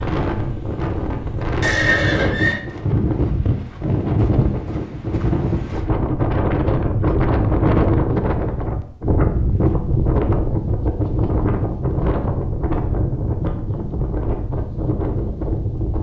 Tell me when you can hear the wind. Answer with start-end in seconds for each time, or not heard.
0.0-15.9.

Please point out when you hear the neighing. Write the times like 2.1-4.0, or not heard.
1.6-2.6.